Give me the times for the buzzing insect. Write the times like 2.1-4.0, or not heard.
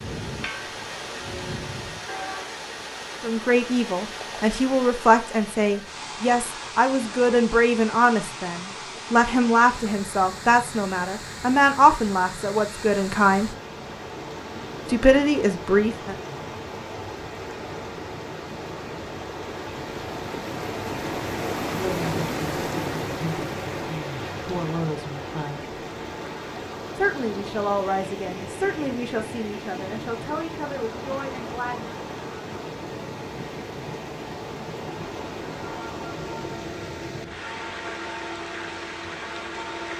not heard.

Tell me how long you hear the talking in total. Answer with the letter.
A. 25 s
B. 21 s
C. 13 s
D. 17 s
B.